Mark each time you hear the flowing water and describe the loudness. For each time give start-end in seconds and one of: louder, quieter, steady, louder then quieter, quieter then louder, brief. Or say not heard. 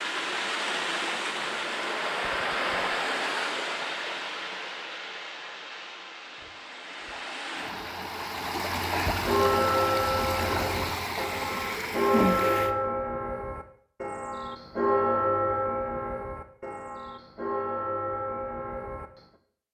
0.0-12.7 quieter then louder.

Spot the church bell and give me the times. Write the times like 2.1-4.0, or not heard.
9.2-19.1.